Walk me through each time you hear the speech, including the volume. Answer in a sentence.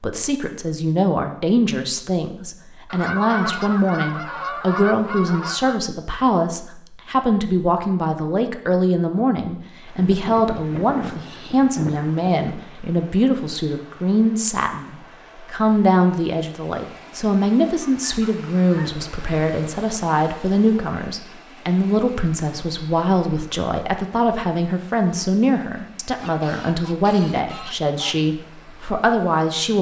The speech can be heard from 0.0 to 29.7 s, at a steady volume.